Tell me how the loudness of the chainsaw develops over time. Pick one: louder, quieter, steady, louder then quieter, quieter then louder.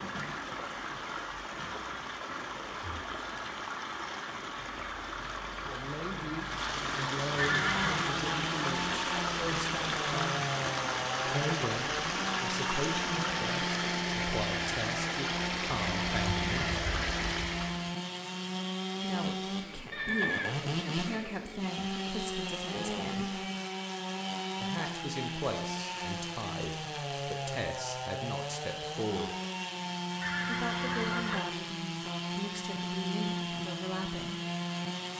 steady.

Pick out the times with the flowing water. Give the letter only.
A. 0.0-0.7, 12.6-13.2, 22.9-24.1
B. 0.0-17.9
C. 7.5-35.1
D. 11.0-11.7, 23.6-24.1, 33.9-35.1
B.